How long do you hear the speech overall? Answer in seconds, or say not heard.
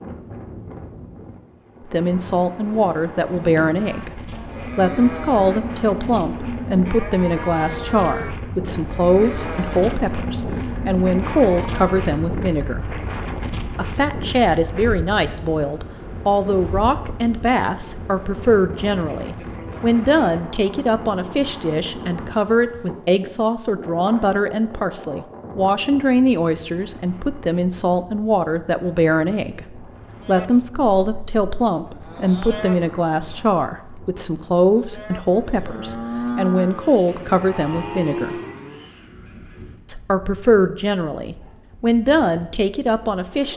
39 s.